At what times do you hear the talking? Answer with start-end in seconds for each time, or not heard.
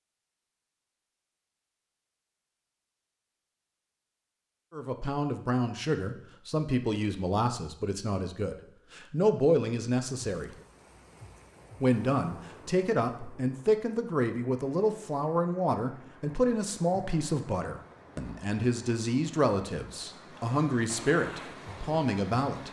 4.7-10.6, 11.8-22.6.